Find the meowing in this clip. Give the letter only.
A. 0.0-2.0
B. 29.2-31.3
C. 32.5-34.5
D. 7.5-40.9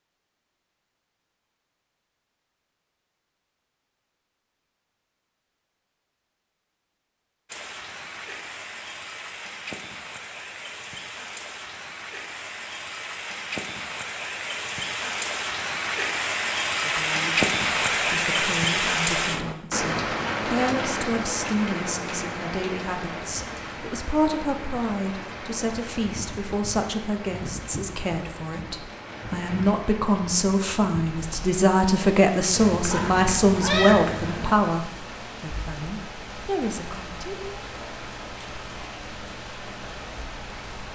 C.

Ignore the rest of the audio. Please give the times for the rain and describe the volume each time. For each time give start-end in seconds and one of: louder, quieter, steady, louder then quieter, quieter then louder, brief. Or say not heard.
7.5-40.9 louder then quieter.